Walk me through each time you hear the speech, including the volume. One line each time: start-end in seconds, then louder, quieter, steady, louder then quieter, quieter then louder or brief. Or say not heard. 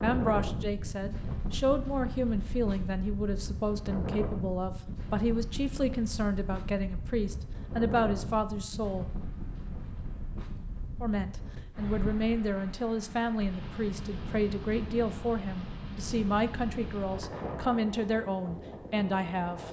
0.0-9.1 steady
11.0-19.6 steady.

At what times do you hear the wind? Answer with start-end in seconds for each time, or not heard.
0.0-19.6.